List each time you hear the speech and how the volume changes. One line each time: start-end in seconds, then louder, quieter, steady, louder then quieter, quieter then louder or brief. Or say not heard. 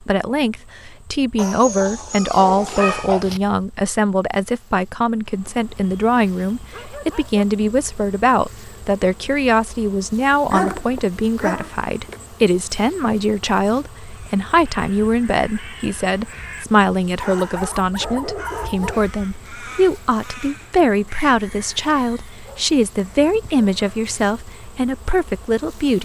0.1-26.0 steady.